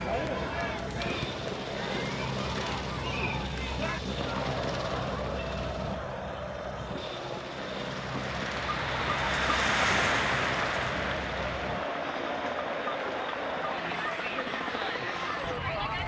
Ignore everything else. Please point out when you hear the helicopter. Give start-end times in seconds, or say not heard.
0.0-16.0.